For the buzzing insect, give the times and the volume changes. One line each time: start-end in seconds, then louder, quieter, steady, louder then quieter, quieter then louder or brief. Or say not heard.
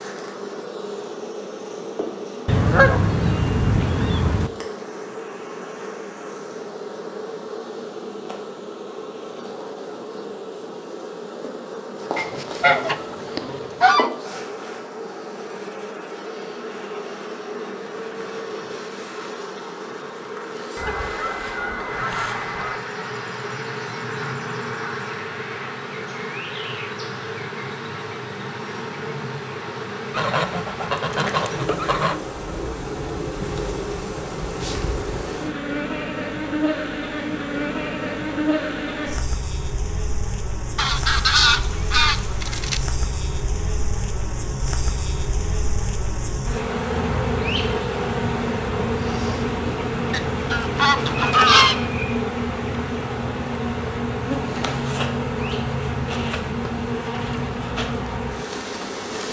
0.0-59.2 louder.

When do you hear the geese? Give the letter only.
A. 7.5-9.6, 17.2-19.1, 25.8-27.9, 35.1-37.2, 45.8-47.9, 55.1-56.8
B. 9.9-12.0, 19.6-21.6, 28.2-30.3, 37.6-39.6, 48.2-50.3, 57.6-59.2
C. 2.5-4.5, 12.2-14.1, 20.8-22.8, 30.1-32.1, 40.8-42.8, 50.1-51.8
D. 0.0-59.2
C.